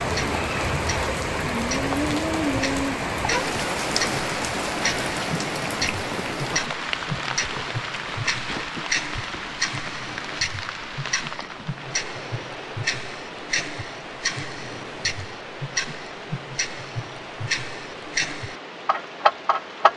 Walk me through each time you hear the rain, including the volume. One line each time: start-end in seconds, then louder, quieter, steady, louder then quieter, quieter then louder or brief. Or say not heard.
0.0-19.9 quieter.